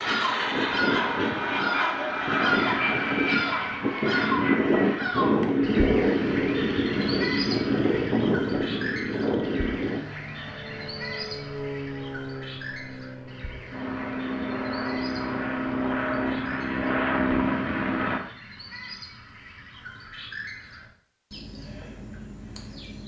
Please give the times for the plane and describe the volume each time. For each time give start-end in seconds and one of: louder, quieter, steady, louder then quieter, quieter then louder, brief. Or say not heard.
0.0-18.2 quieter then louder.